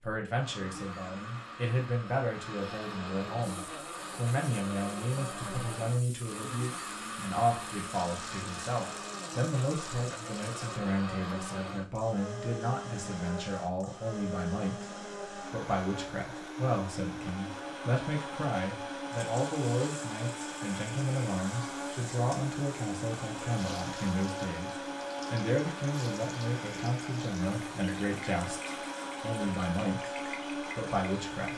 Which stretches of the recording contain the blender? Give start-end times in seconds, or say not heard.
0.3-31.5.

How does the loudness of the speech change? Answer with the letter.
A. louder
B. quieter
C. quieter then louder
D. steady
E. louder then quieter
D.